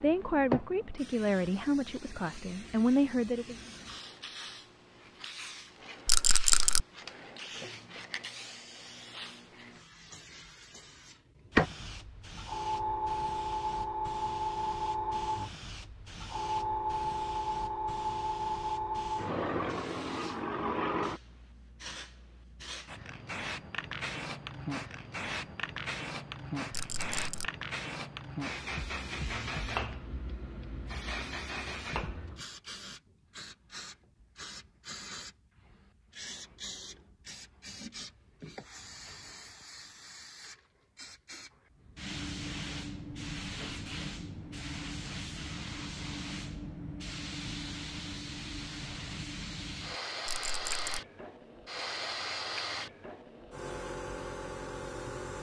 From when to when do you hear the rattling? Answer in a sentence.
You can hear the rattling from 6.0 to 6.8 s, from 26.7 to 27.5 s and from 50.2 to 51.0 s.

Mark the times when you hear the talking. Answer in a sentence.
You can hear the talking from 0.0 to 3.5 s.